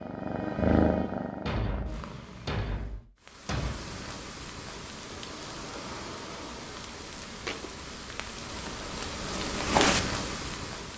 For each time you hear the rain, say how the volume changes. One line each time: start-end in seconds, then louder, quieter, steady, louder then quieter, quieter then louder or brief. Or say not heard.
3.2-10.9 louder.